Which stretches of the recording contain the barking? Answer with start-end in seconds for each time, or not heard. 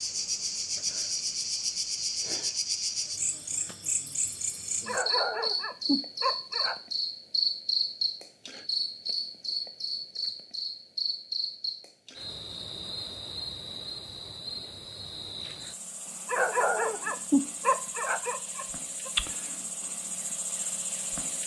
4.8-6.8, 16.2-19.1.